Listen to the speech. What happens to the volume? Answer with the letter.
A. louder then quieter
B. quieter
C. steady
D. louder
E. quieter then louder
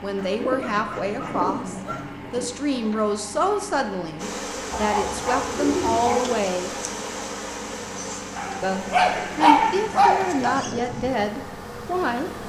C.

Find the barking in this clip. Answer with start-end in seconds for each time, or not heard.
0.1-2.0, 4.7-6.3, 8.3-10.5.